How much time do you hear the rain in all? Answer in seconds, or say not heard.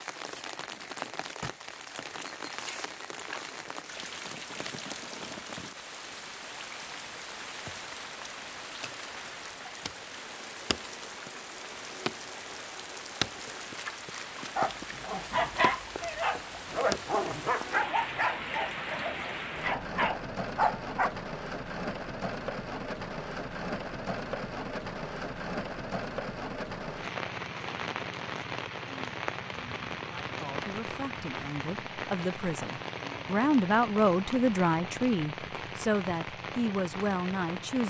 38 s.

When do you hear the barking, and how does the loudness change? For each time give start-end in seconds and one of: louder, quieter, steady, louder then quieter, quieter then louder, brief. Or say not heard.
14.6-21.1 quieter then louder.